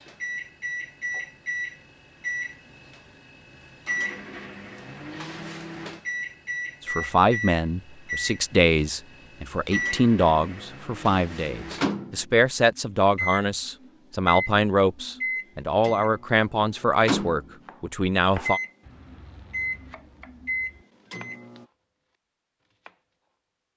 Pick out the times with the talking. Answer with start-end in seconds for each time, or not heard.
6.8-18.6.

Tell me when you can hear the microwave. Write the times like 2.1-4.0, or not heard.
0.0-21.6.